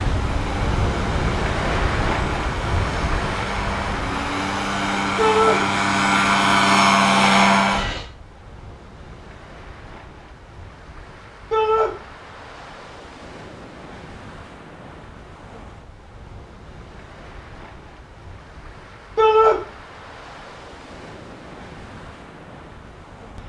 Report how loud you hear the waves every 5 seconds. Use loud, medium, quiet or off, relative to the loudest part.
loud, quiet, quiet, quiet, quiet.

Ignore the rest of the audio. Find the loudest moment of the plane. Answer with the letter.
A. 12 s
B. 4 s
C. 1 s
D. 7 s
D.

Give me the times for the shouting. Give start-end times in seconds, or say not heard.
5.2-5.6, 11.5-11.9, 19.1-19.6.